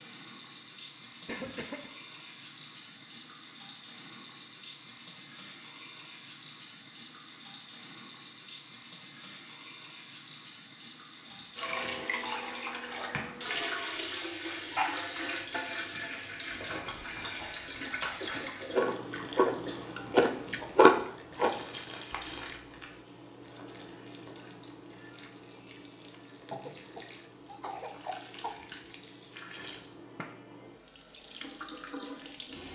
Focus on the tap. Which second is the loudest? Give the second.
14 s.